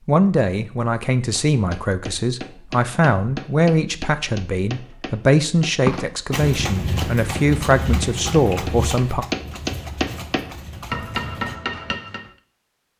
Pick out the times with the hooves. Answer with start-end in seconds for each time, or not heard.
5.8-11.6.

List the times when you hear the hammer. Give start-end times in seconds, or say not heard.
1.5-12.3.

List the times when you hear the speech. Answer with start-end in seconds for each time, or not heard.
0.1-9.2.